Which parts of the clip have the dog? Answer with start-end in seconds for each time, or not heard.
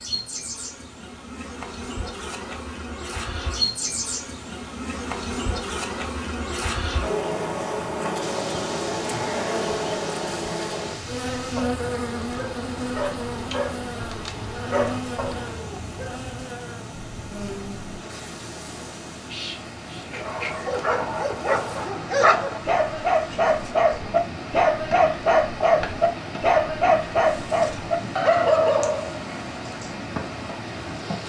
11.6-16.1, 20.1-29.9.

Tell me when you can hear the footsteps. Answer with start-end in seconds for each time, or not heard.
not heard.